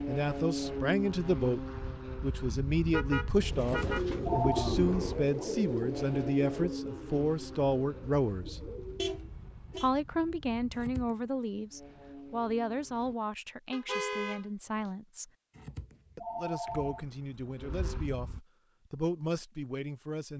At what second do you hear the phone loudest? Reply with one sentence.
The volume of the phone peaks at 4 seconds.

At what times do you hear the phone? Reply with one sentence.
The phone can be heard from 3.6 to 4.7 s, from 10.7 to 11.2 s and from 15.6 to 17.1 s.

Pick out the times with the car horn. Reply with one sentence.
You can hear the car horn from 2.9 to 4.1 s, from 8.9 to 9.9 s and from 13.7 to 14.9 s.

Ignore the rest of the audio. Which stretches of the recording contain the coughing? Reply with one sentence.
The coughing can't be heard in this clip.